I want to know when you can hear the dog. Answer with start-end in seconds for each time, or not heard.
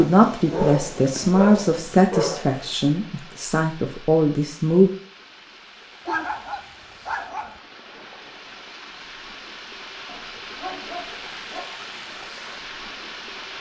0.5-2.6, 6.0-7.6, 10.1-11.7.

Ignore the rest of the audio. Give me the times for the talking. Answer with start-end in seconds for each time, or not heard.
0.0-4.9.